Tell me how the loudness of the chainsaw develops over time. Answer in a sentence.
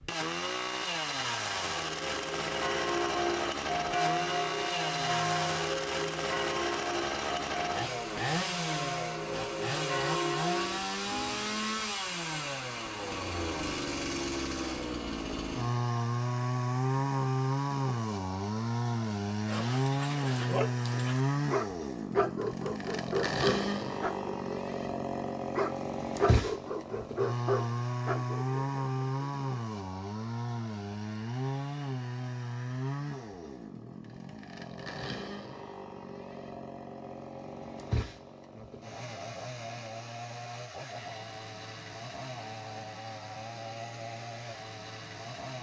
The loudness of the chainsaw goes down.